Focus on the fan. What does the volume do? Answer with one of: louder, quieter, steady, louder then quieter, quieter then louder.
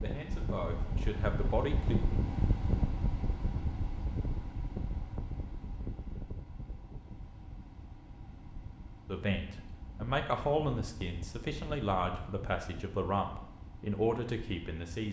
quieter.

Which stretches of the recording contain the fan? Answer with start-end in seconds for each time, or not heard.
0.0-15.0.